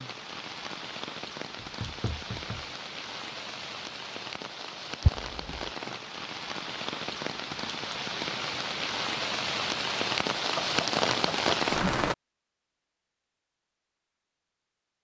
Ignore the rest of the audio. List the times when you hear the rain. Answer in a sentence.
You can hear the rain from 0.0 to 12.2 s.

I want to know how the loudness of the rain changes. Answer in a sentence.
The volume of the rain goes up.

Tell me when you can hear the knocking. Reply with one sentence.
The knocking can be heard from 1.6 to 2.6 s, from 5.0 to 5.7 s and from 10.6 to 11.5 s.